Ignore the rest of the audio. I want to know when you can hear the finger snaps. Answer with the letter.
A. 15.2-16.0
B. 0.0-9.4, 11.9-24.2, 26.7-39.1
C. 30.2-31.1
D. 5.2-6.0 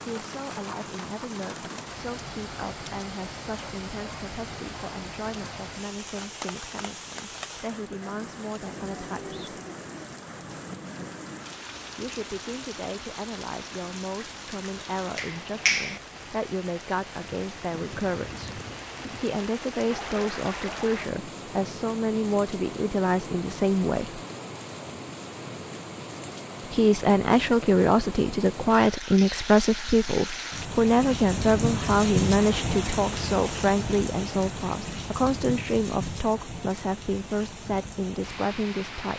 A.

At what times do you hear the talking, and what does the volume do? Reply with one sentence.
The talking can be heard from 0.0 to 9.4 s, at a steady volume; from 11.9 to 24.2 s, getting louder; and from 26.7 to 39.1 s, getting quieter.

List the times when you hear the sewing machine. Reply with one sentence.
The sewing machine can't be heard in this clip.